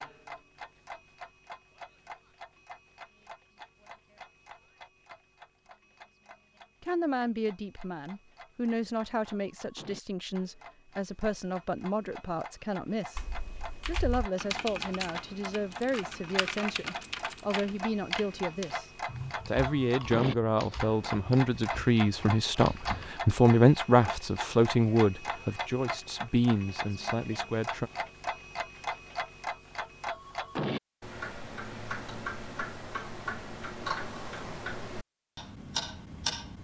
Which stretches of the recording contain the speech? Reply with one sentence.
The speech can be heard from 6.8 to 13.2 s and from 13.8 to 27.9 s.